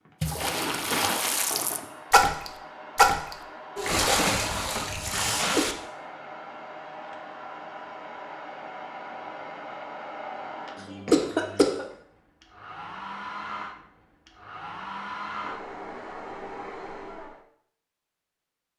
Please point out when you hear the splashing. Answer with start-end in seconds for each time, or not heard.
0.2-5.8.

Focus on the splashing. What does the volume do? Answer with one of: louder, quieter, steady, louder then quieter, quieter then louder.
louder then quieter.